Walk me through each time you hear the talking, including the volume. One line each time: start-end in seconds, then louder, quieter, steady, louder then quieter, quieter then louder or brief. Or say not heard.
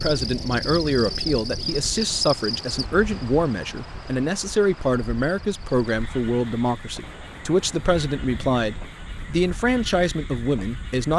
0.0-11.1 steady.